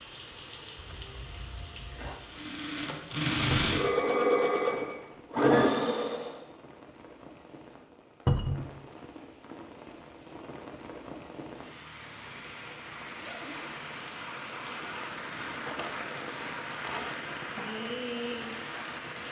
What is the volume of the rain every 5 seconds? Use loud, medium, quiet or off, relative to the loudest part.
medium, quiet, medium, loud.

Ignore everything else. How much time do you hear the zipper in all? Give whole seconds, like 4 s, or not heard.
2 s.